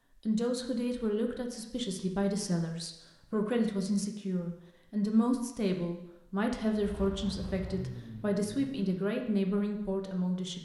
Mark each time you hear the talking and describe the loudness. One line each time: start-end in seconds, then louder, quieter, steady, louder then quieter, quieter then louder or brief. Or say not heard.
0.2-10.6 steady.